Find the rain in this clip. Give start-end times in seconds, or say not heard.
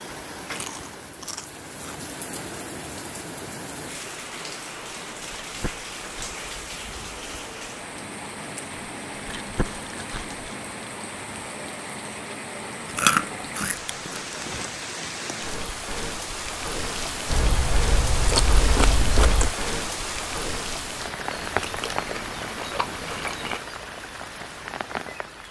0.0-25.4.